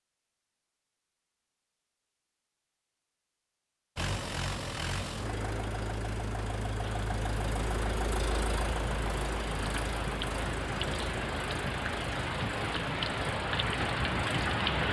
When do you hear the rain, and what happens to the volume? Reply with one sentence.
The rain can be heard from 6.8 to 14.8 s, getting louder.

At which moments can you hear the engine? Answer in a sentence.
The engine can be heard from 4.0 to 14.8 s.